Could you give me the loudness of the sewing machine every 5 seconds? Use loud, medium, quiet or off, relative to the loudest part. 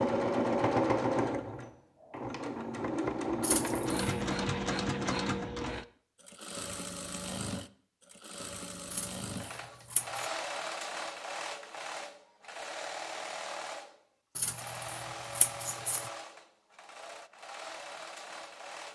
loud, medium, medium, quiet.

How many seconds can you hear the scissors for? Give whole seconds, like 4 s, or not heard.
4 s.